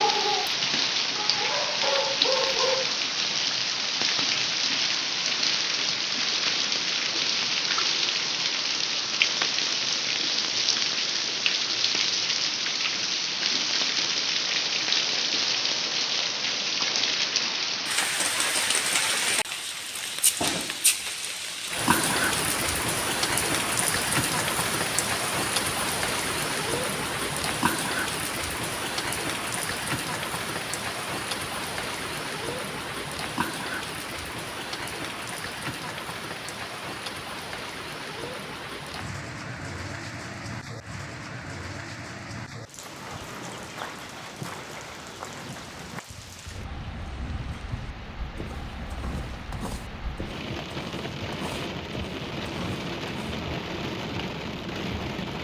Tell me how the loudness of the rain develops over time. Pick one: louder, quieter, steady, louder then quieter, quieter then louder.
quieter.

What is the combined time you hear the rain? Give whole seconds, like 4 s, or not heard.
55 s.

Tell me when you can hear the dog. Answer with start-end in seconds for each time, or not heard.
0.0-2.9.